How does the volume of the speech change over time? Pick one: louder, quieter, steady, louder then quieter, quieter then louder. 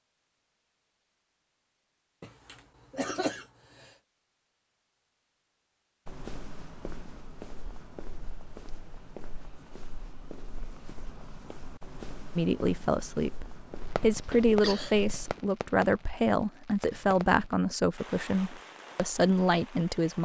steady.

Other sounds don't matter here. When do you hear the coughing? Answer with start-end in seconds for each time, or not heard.
2.2-3.9, 14.1-15.0.